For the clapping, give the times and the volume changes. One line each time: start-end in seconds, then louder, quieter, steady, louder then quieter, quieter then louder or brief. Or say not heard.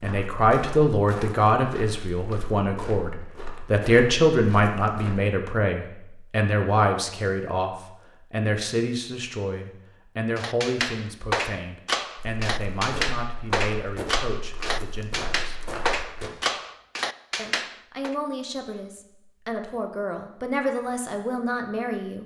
10.3-18.1 steady.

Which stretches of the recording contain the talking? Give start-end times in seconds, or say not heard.
0.0-15.6, 17.4-22.2.